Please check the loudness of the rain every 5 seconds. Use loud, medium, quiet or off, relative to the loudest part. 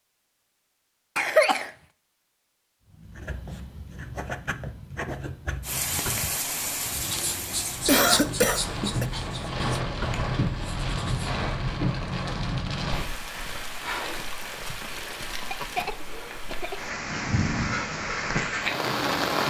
off, loud, loud, loud.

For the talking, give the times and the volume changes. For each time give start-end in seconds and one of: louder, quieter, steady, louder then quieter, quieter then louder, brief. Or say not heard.
not heard.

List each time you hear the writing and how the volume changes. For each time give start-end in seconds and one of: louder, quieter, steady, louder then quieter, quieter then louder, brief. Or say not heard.
2.9-11.3 louder then quieter.